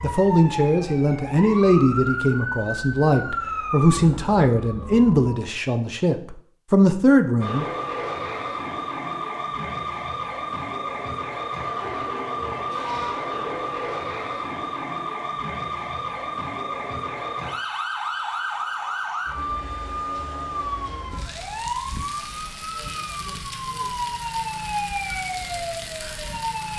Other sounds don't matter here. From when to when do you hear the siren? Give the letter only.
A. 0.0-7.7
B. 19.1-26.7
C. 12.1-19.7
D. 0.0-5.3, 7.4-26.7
D.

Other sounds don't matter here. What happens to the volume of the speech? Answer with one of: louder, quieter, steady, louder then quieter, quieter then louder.
steady.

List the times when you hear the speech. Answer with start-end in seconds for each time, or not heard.
0.0-7.7.